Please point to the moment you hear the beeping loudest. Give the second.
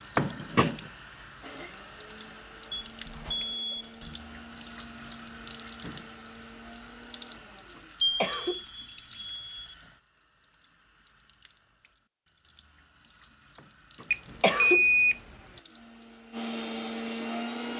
15 s.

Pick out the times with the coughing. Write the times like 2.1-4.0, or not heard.
0.1-0.8, 7.8-8.6, 14.0-14.8.